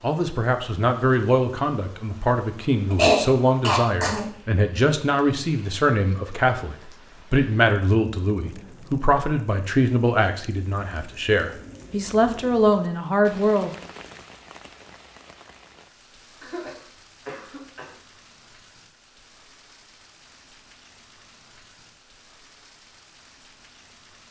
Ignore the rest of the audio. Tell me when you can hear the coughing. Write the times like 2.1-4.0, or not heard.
2.9-4.2, 16.4-17.9.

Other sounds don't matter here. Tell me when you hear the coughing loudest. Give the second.
3 s.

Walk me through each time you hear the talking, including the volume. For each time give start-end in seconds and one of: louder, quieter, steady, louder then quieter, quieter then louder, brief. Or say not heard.
0.0-13.7 steady.